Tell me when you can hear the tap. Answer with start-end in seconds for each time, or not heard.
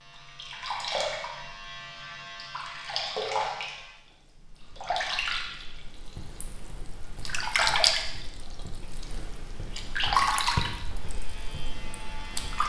0.1-12.6.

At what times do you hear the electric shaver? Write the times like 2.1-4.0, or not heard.
0.0-4.0, 11.0-12.6.